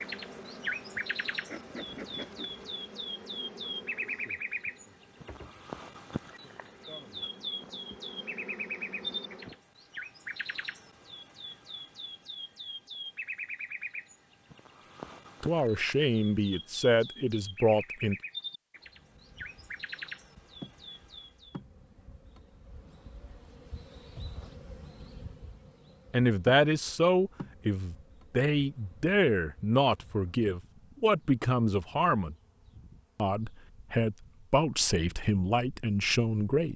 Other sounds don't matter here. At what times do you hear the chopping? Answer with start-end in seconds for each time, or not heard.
not heard.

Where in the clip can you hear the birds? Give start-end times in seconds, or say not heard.
0.0-21.6.